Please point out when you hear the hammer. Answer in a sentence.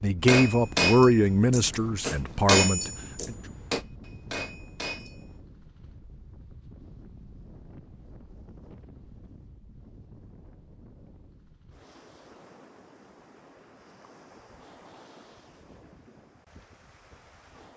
The hammer can be heard from 0.2 to 5.2 s.